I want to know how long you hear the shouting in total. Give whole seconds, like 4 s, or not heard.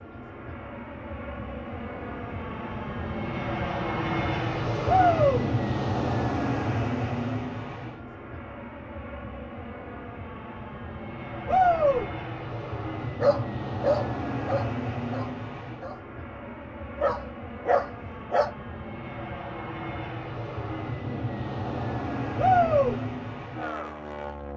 2 s.